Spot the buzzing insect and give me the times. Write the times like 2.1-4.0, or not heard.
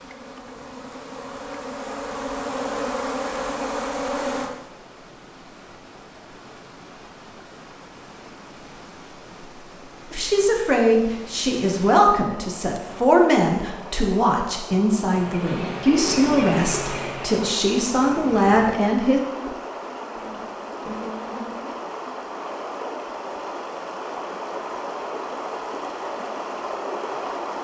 0.0-4.5, 15.1-21.8.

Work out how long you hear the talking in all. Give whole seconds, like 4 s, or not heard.
9 s.